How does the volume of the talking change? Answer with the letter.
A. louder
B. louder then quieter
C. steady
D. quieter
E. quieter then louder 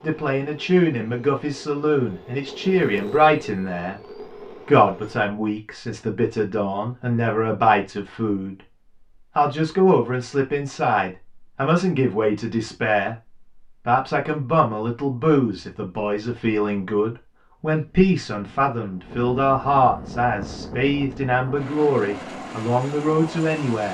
C.